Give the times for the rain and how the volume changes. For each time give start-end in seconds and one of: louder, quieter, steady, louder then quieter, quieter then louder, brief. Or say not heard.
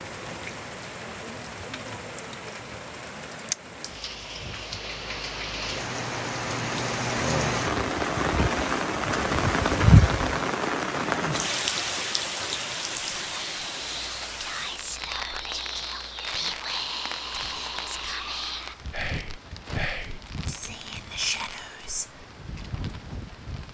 0.0-23.6 louder then quieter.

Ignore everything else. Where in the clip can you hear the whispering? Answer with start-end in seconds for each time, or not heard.
13.2-22.2.